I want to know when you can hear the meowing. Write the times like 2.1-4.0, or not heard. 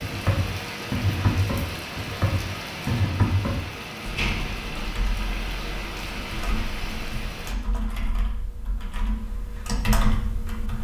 not heard.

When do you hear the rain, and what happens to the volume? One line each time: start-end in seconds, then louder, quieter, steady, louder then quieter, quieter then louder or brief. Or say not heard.
0.0-7.5 steady.